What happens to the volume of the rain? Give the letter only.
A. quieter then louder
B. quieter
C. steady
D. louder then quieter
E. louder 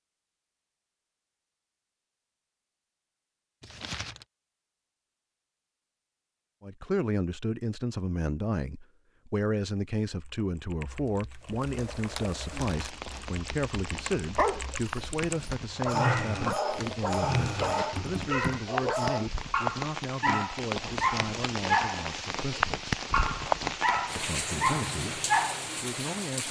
E.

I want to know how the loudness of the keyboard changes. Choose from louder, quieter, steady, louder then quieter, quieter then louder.
louder.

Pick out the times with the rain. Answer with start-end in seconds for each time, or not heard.
11.4-26.4.